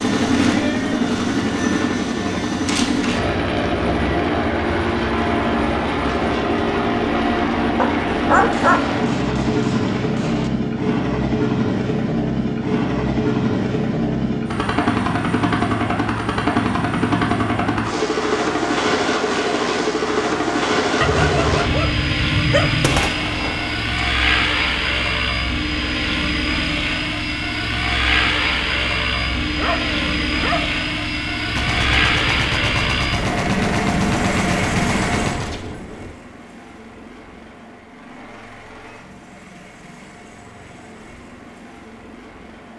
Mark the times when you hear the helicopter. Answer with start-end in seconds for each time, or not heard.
0.0-42.7.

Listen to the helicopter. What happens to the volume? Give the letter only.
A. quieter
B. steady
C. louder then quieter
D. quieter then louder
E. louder
A.